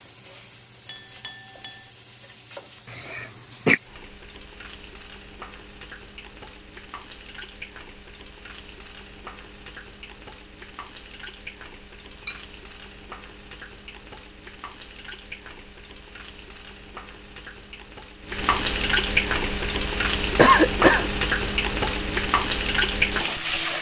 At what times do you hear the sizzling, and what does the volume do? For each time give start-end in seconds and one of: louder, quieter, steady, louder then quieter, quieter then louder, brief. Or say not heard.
0.0-23.7 louder.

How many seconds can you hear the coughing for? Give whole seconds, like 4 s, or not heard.
2 s.